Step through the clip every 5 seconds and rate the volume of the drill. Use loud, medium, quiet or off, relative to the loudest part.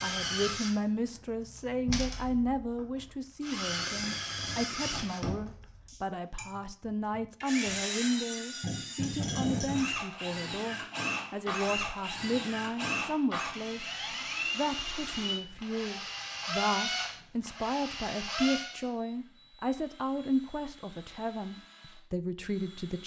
loud, loud, loud, loud, quiet.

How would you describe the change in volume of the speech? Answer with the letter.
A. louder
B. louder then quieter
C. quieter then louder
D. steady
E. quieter
D.